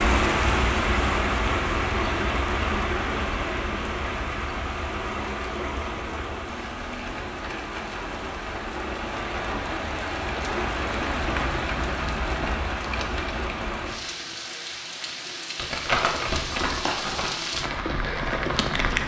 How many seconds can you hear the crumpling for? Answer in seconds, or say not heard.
2 s.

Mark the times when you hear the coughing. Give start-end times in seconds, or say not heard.
not heard.